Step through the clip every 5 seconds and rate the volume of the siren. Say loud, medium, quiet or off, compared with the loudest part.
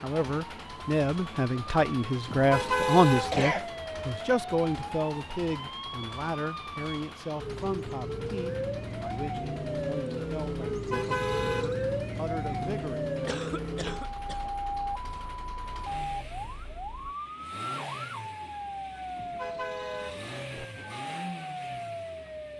medium, loud, loud, medium, medium.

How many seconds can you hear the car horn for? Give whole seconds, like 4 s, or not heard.
4 s.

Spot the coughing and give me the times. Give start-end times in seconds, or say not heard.
3.3-3.7, 13.2-14.4.